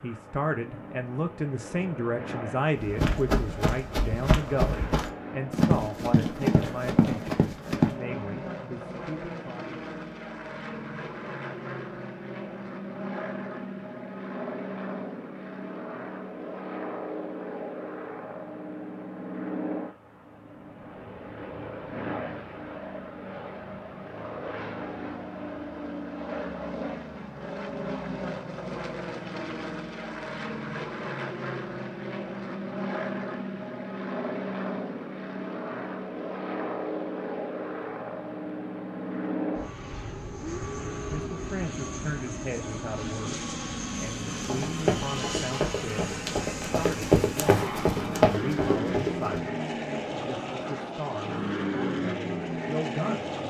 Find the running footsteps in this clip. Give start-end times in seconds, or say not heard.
2.8-8.0, 44.4-49.5.